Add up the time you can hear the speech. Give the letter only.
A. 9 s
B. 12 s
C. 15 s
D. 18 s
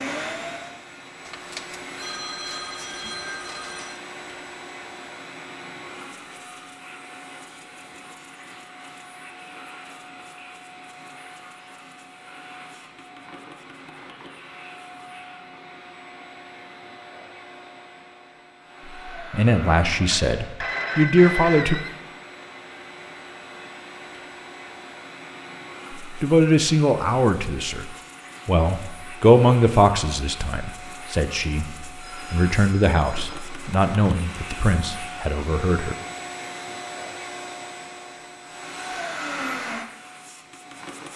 B.